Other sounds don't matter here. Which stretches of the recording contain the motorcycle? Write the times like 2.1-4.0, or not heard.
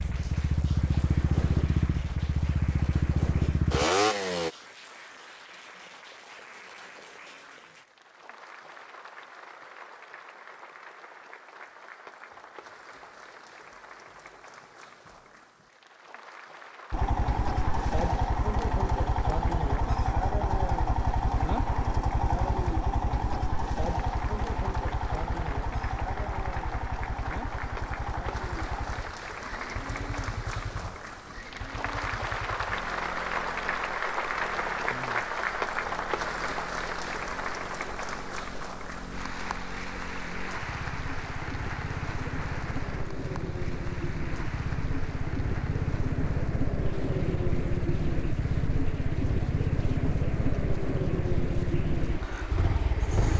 0.0-4.5, 16.9-53.3.